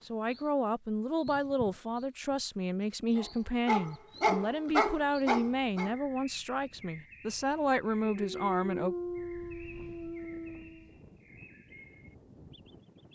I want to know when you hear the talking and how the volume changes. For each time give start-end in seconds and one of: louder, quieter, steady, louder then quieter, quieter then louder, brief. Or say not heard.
0.1-8.9 steady.